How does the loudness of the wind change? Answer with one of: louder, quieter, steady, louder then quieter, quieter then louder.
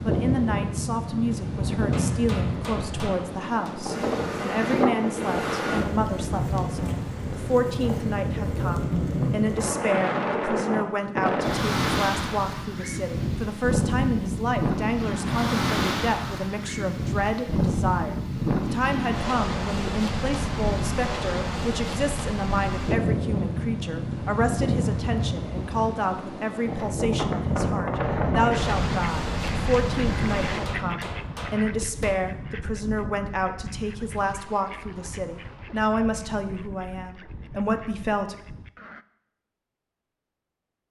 steady.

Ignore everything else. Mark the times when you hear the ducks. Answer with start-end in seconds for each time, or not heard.
28.1-39.0.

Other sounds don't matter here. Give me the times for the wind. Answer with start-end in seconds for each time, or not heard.
0.0-30.8.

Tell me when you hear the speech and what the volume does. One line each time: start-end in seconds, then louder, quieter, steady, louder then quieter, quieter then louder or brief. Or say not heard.
0.0-38.4 steady.